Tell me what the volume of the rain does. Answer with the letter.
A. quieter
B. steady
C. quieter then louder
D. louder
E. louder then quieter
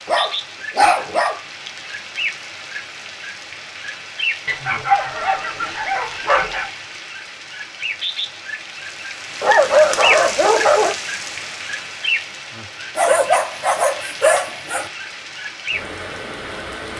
E.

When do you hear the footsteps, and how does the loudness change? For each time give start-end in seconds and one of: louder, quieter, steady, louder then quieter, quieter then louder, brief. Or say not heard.
not heard.